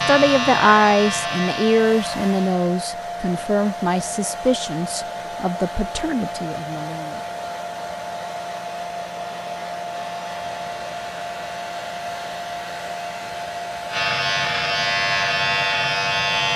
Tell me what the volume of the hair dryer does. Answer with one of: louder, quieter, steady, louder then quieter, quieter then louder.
steady.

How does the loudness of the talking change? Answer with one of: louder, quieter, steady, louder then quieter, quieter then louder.
quieter.